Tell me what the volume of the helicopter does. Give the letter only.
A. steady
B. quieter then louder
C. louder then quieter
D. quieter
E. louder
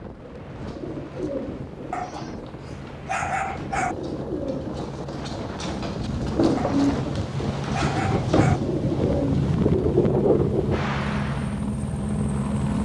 E.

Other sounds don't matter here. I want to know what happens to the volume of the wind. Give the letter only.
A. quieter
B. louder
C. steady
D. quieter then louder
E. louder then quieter
B.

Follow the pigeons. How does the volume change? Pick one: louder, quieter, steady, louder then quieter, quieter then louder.
quieter then louder.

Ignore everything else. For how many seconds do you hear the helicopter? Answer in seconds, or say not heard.
13 s.